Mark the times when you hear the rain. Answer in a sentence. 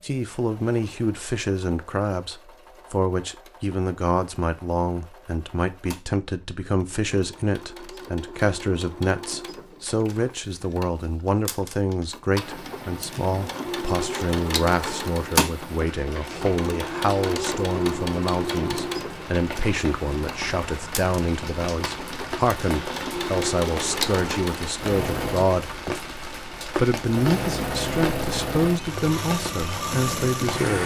The rain can be heard from 12.3 to 30.8 s.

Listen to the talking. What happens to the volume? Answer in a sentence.
The volume of the talking stays about the same.